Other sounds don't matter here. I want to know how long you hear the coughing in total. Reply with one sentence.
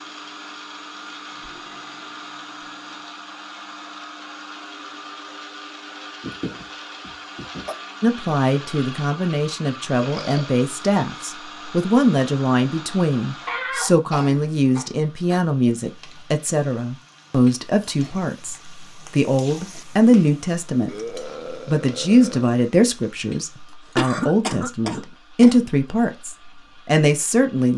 You can hear the coughing for 6 seconds altogether.